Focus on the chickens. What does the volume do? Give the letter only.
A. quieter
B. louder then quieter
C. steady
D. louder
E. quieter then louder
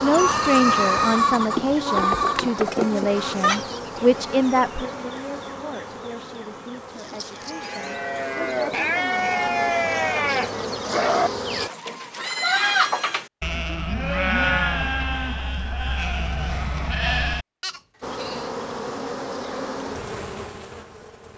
E.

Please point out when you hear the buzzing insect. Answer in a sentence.
You can hear the buzzing insect from 0.0 to 11.7 s and from 18.0 to 21.3 s.